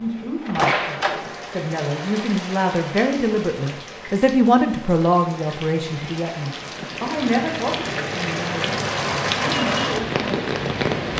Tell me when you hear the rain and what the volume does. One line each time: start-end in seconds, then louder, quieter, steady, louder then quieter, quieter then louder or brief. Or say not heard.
0.0-11.1 quieter then louder.